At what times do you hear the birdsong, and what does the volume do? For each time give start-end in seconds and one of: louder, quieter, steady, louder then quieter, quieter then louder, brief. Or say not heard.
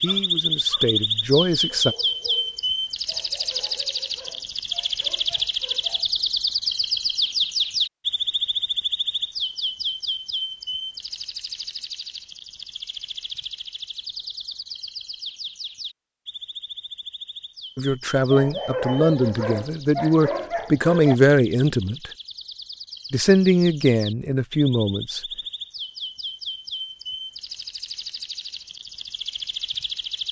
0.0-30.2 quieter then louder.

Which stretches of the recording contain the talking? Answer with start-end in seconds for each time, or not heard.
0.0-1.9, 17.8-22.1, 23.1-25.2.